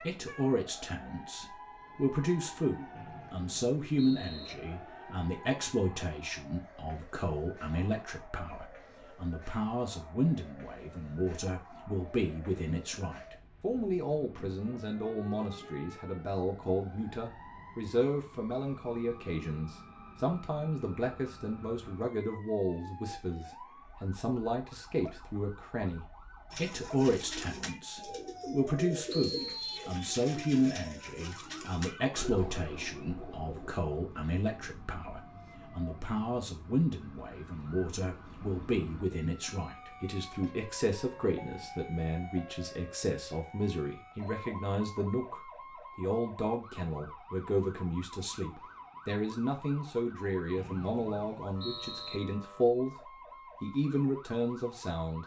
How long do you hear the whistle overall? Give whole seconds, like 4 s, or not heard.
4 s.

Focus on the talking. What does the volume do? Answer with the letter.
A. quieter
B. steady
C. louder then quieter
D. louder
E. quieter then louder
B.